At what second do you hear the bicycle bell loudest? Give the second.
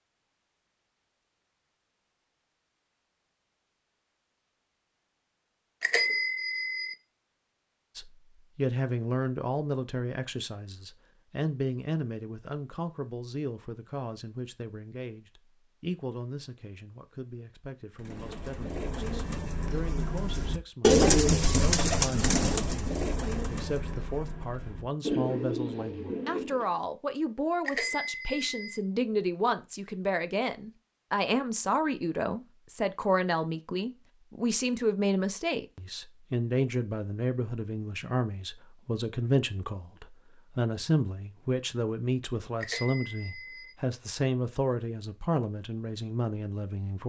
6 s.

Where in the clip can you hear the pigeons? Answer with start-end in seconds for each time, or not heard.
17.9-26.8.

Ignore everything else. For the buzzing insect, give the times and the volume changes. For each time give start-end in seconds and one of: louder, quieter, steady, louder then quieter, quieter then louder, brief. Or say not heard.
not heard.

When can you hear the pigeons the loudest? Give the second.
21 s.